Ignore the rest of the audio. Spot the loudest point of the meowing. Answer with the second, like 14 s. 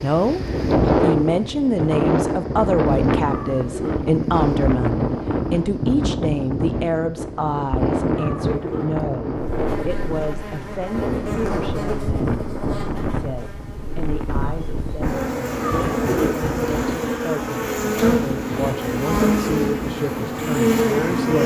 16 s.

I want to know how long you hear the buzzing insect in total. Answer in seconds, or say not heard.
12 s.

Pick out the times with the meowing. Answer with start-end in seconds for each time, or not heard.
3.2-4.0, 8.2-8.9, 15.6-16.4.